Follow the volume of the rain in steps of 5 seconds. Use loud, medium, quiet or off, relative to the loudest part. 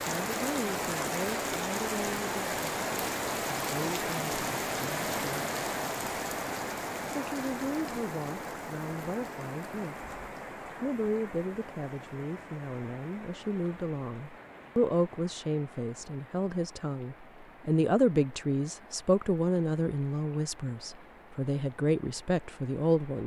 loud, loud, quiet, quiet, quiet.